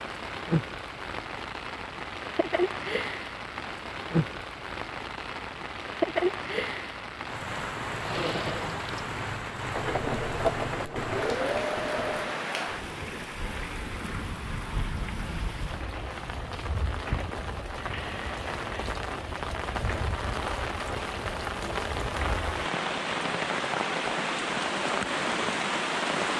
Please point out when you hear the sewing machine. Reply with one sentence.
The sewing machine can be heard from 8.0 to 12.4 s.